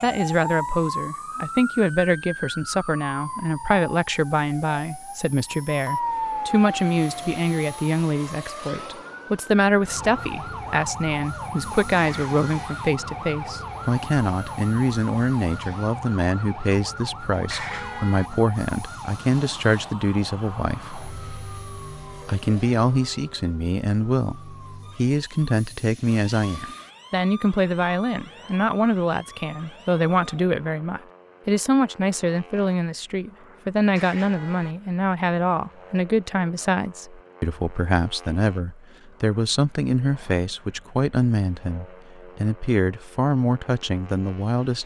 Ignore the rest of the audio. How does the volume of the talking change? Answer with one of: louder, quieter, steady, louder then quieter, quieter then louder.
steady.